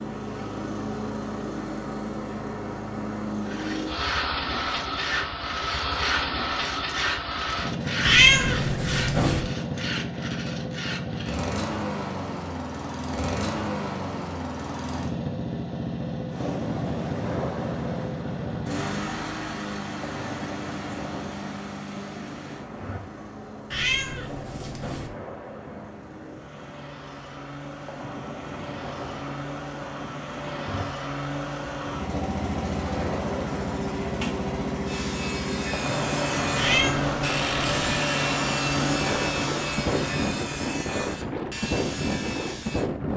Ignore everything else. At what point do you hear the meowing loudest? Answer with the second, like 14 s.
8 s.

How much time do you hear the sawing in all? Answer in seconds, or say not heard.
16 s.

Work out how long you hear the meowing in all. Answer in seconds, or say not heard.
4 s.